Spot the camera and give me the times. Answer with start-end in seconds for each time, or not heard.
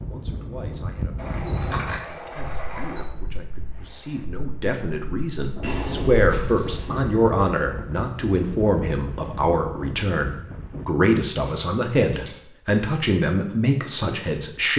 1.1-3.0, 5.6-7.0, 11.4-12.3.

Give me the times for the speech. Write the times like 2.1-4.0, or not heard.
0.1-14.7.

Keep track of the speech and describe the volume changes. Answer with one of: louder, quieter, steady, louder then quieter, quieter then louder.
louder.